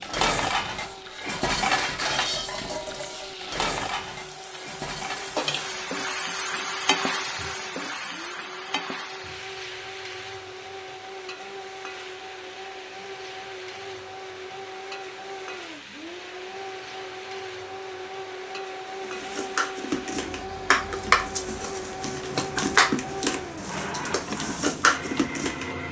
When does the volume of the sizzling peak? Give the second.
7 s.